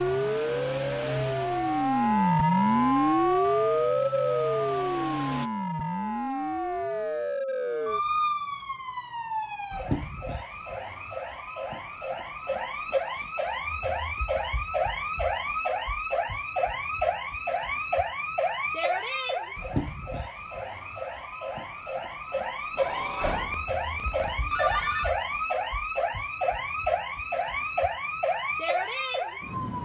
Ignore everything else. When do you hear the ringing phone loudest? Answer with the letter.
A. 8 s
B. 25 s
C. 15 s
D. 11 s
B.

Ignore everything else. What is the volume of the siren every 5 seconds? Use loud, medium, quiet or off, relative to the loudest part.
loud, medium, medium, medium, medium, medium.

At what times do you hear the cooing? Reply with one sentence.
The cooing can't be heard in this clip.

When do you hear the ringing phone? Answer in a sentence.
You can hear the ringing phone from 22.8 to 25.1 s.